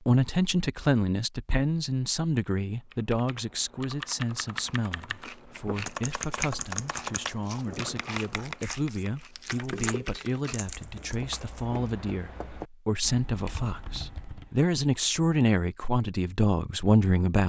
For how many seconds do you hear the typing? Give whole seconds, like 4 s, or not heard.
12 s.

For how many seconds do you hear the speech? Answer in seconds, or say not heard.
17 s.